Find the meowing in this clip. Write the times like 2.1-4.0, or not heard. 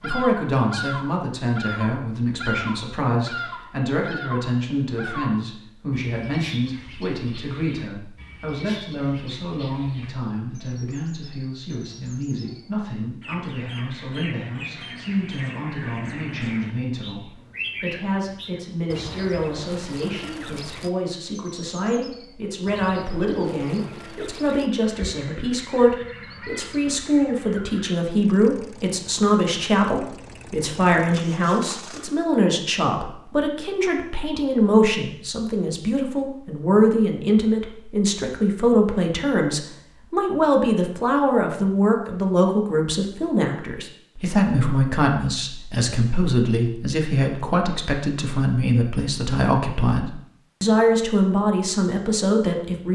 not heard.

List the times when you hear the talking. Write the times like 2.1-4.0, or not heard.
0.0-52.9.